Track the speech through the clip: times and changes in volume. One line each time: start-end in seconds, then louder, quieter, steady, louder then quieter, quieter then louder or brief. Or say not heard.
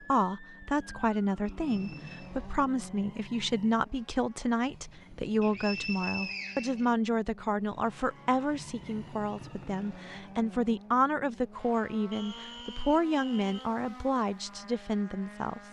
0.1-15.6 steady.